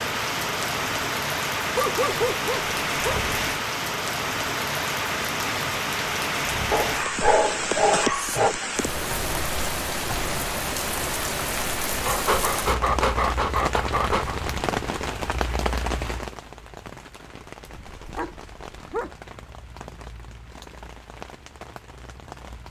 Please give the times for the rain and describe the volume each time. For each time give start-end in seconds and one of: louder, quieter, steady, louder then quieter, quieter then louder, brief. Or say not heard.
0.0-22.6 quieter.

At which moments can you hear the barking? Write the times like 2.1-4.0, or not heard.
1.8-3.3, 6.7-8.6, 12.1-14.4, 17.9-19.1.